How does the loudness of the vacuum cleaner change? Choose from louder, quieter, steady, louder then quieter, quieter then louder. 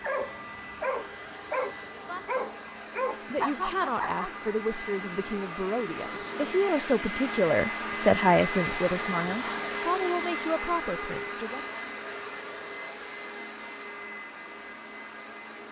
louder then quieter.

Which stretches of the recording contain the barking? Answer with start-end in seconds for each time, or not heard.
0.0-4.5.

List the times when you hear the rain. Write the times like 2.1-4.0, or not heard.
not heard.